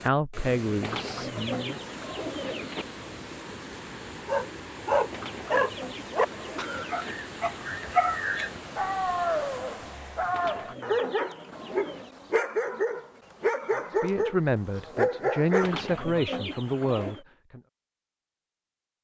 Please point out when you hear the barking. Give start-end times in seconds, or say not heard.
4.2-15.7.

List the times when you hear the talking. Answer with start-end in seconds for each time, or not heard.
0.0-1.8, 13.7-17.6.